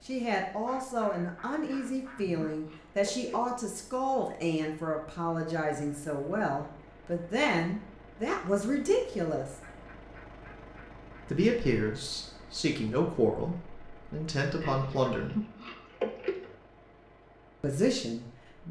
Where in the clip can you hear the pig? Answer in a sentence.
The pig can be heard from 1.6 to 3.4 s and from 14.6 to 16.6 s.